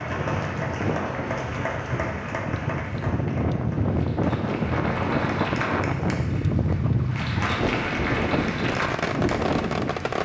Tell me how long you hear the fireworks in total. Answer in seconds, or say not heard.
2 s.